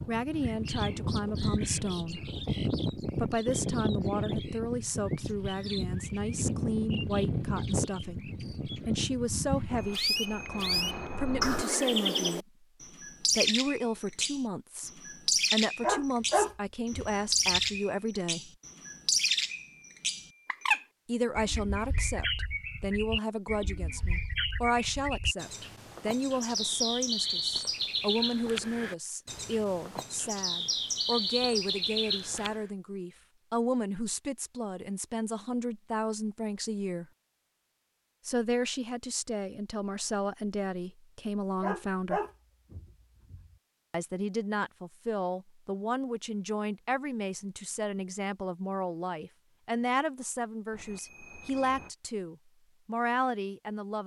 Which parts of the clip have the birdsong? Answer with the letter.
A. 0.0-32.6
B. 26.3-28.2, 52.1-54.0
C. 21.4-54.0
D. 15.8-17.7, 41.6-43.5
A.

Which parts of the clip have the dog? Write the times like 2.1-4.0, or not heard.
15.8-17.7, 41.6-43.5.